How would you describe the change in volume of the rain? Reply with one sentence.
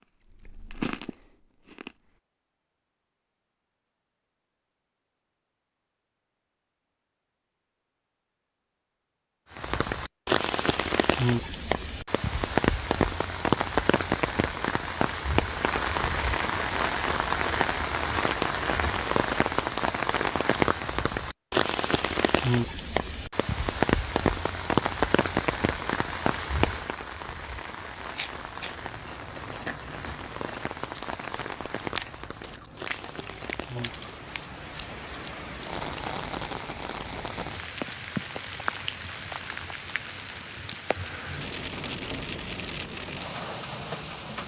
The loudness of the rain goes down.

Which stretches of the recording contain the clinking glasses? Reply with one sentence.
The clinking glasses can't be heard in this clip.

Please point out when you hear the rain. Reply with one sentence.
You can hear the rain from 9.5 to 44.4 s.